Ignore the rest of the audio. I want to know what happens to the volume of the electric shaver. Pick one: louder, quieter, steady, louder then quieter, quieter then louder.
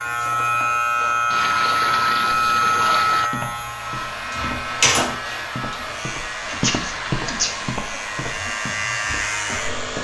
quieter then louder.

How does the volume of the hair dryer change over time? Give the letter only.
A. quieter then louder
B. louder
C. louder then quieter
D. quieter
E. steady
E.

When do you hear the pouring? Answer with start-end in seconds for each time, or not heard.
1.3-3.3, 6.4-7.8.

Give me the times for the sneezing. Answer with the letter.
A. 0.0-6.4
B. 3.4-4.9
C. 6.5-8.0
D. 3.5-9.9
C.